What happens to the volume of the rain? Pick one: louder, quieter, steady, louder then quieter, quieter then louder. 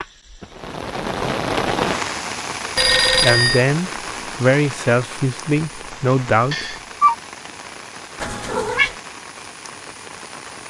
quieter.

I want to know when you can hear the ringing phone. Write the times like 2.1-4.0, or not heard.
2.8-3.6, 6.5-7.2.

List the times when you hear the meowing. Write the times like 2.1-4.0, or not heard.
8.2-8.9.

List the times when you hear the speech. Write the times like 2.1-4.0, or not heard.
3.1-6.8.